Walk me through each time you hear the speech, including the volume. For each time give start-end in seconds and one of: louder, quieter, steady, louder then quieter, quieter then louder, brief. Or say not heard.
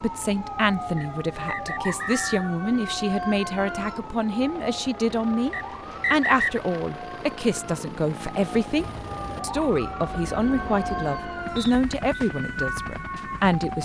0.0-13.8 steady.